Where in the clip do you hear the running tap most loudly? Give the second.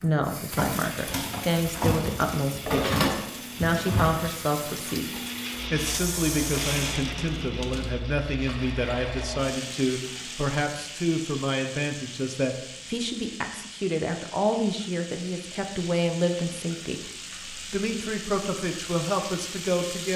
3 s.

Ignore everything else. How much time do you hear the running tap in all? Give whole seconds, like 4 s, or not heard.
20 s.